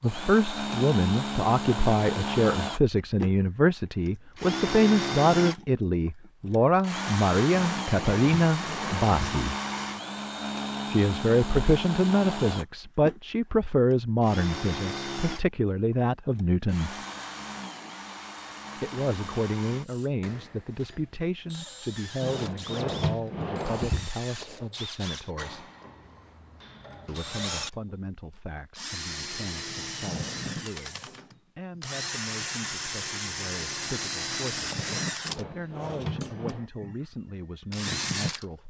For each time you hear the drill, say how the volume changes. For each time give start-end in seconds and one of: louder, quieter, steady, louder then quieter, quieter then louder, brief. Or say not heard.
0.0-38.5 quieter then louder.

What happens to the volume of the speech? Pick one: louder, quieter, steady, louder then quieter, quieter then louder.
quieter.